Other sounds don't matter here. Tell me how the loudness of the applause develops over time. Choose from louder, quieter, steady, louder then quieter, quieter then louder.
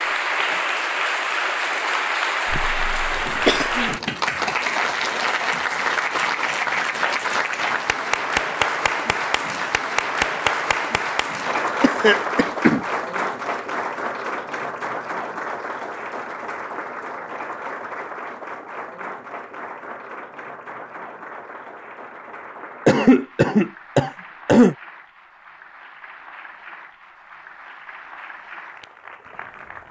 quieter.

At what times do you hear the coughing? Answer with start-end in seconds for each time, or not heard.
2.5-4.0, 11.8-12.8, 22.9-24.8.